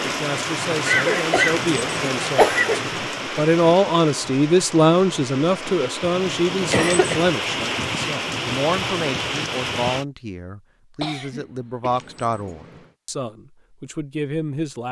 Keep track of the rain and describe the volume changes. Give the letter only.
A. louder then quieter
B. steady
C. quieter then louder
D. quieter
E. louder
C.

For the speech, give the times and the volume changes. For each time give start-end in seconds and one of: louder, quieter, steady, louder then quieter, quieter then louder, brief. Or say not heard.
0.0-14.8 louder then quieter.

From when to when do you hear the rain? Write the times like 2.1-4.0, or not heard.
0.0-10.1.